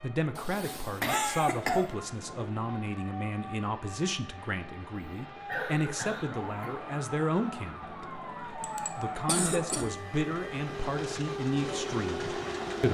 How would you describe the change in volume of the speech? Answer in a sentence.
The loudness of the speech stays about the same.